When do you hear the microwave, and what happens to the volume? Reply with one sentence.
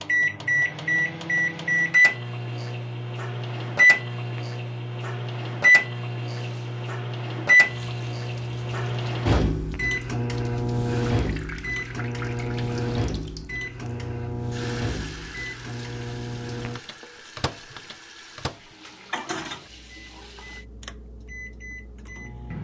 You can hear the microwave from 0.0 to 22.5 s, getting quieter.